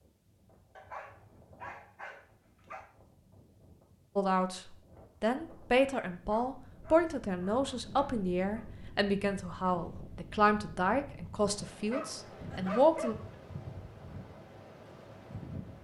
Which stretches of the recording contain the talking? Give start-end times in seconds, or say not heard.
4.2-4.6, 5.2-13.2.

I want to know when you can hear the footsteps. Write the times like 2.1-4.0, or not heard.
not heard.